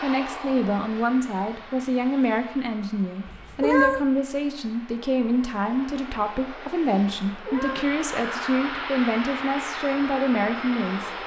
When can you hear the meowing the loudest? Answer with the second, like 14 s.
4 s.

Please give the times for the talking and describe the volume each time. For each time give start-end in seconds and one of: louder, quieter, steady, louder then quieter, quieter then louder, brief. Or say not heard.
0.0-11.1 steady.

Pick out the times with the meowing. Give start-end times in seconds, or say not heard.
3.2-4.0, 7.2-8.0.